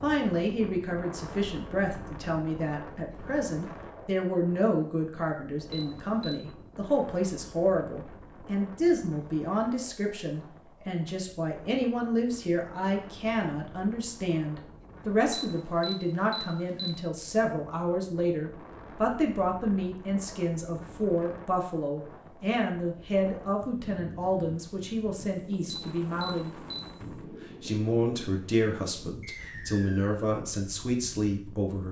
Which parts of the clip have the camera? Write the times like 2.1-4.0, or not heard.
5.7-6.4, 15.3-16.9, 25.7-26.9.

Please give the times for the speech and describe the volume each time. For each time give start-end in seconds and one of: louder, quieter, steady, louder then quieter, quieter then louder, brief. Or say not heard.
0.0-31.8 steady.